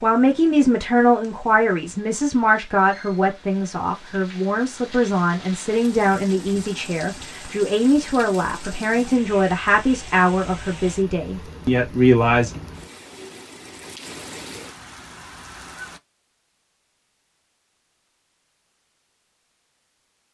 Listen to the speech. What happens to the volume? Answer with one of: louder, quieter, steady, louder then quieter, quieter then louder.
steady.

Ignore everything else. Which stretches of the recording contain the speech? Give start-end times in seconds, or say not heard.
0.0-12.5.